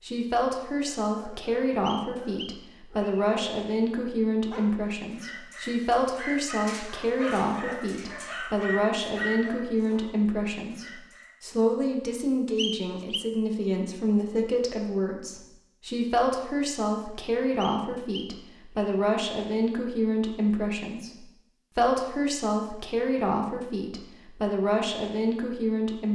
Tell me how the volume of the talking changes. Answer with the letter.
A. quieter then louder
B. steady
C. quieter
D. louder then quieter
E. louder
B.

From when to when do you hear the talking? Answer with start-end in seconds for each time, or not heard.
0.0-26.0.